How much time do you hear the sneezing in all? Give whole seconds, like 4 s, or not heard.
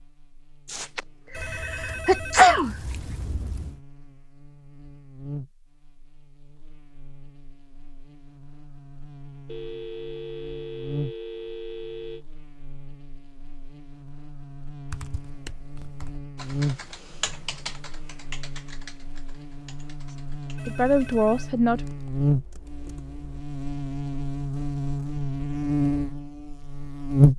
2 s.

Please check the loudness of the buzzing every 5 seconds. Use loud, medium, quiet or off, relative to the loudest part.
quiet, quiet, quiet, quiet, medium, loud.